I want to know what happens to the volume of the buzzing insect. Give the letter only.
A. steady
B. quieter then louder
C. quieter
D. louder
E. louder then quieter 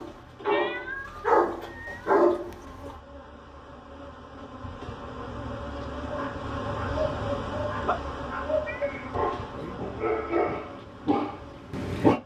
E.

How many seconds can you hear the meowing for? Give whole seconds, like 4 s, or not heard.
3 s.